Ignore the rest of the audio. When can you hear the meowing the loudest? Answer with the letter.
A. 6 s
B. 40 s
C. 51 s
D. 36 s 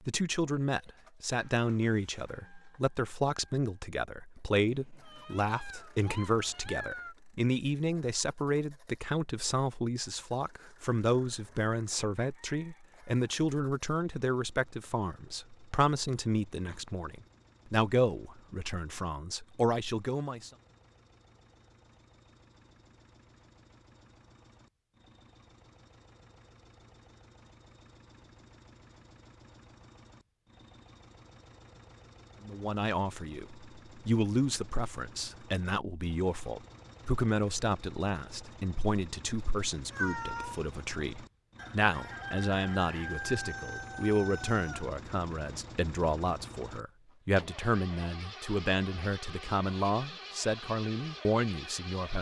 B.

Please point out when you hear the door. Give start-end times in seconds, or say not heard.
not heard.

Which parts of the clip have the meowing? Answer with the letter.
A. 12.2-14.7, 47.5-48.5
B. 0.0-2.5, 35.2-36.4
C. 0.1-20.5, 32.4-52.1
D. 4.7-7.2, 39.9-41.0
D.